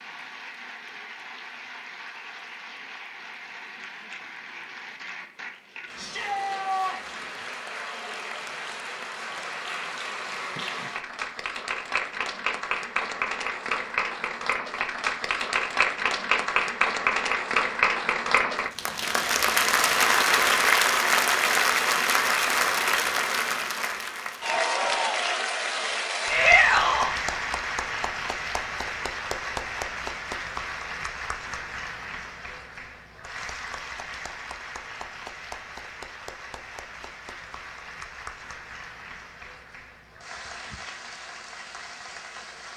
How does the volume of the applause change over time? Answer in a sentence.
The loudness of the applause goes up, then down.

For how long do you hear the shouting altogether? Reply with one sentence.
The shouting can be heard for 2 seconds in total.